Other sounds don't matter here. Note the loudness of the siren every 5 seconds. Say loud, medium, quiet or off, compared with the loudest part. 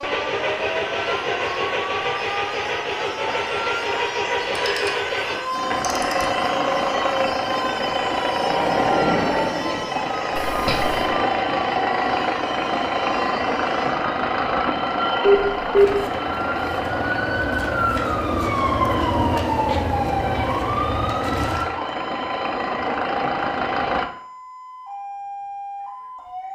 medium, medium, medium, loud, loud, medium.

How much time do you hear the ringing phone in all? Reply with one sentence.
The ringing phone can be heard for 2 seconds in total.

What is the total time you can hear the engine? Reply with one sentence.
You can hear the engine for 24 seconds altogether.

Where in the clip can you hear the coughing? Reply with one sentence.
You can hear the coughing from 10.3 to 11.1 s.